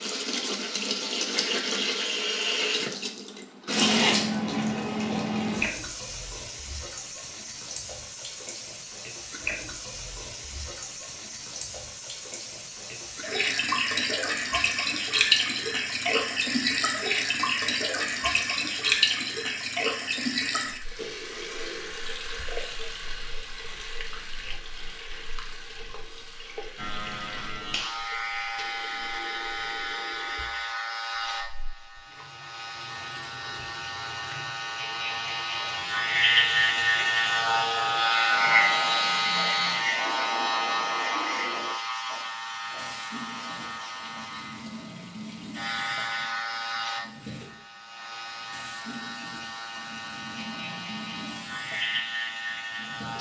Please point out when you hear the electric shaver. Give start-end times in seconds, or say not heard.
26.8-53.1.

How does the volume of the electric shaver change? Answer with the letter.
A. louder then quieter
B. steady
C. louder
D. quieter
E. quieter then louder
A.